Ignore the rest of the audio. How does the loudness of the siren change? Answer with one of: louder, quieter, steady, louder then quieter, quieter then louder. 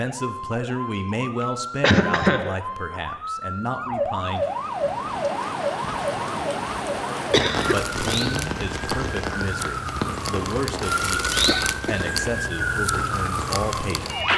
louder.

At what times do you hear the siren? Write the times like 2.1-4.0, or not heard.
0.0-14.3.